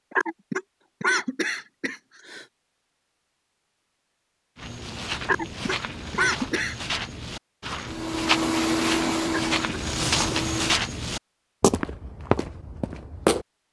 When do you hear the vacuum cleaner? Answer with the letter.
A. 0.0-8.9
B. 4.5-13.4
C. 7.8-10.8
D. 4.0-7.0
C.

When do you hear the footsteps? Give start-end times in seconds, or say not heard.
4.5-13.4.